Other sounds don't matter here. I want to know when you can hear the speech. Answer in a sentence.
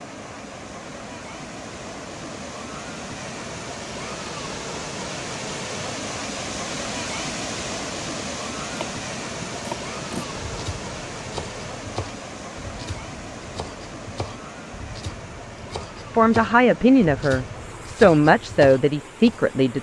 You can hear the speech from 16.1 to 19.7 s.